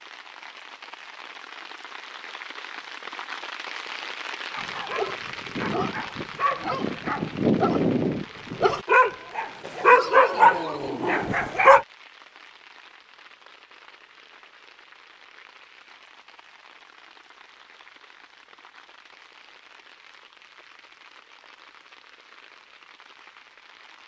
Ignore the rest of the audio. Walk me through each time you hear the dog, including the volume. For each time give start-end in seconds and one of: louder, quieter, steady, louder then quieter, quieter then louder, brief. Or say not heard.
4.5-11.8 louder.